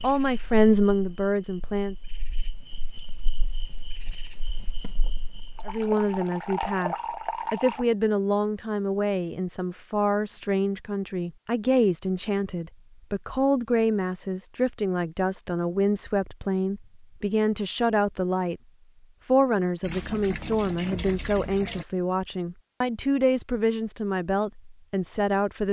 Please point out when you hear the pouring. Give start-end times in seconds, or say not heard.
5.5-7.8, 19.8-21.9.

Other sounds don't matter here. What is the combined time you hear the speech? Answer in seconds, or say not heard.
21 s.